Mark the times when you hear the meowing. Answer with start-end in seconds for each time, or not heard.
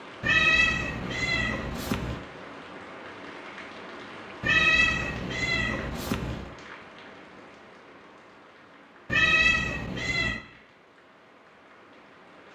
0.2-2.2, 4.4-6.5, 9.1-10.4.